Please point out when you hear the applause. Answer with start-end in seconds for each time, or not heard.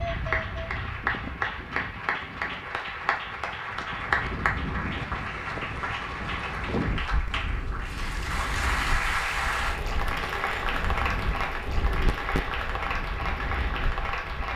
0.0-14.5.